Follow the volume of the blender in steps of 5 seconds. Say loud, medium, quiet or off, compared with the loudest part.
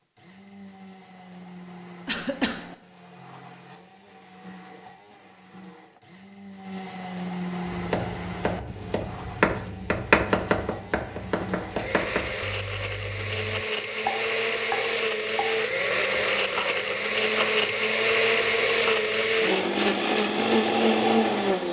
quiet, quiet, medium, loud, loud.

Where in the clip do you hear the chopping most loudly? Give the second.
10 s.